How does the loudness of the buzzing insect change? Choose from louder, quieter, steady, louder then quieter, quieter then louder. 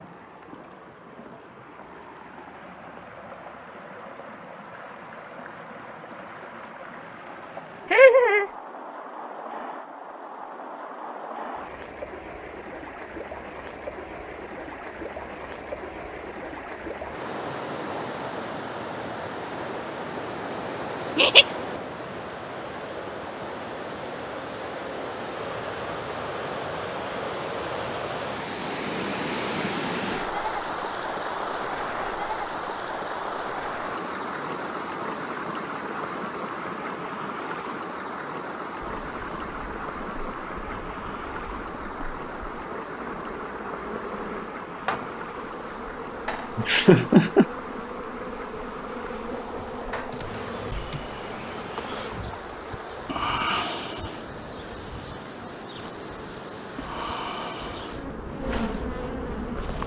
louder.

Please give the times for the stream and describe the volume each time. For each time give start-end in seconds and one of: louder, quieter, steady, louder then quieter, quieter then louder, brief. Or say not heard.
0.0-59.8 louder then quieter.